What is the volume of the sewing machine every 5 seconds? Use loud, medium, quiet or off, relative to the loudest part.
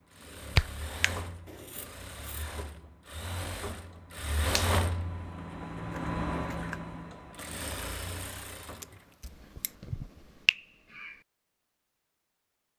loud, loud, off.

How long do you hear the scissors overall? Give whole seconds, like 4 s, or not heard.
3 s.